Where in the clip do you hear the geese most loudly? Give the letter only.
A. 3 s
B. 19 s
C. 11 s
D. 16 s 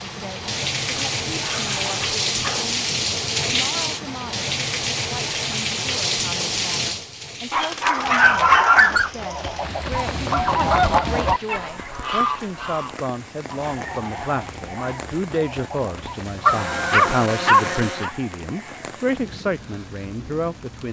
C.